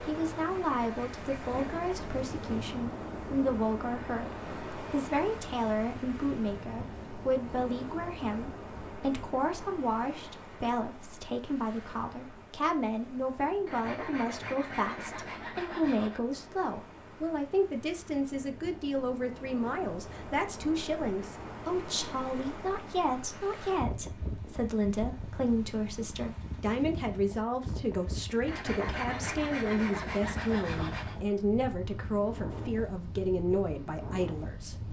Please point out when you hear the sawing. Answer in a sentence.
The sawing can be heard from 0.7 to 2.1 s, from 13.7 to 16.2 s and from 28.4 to 31.2 s.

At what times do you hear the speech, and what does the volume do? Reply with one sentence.
The speech can be heard from 0.1 to 34.8 s, at a steady volume.